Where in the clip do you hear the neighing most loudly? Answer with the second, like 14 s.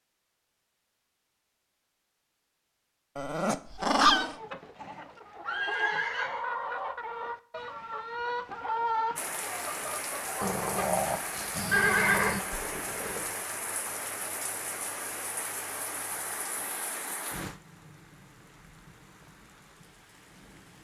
12 s.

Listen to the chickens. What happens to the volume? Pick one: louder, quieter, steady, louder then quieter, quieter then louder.
louder then quieter.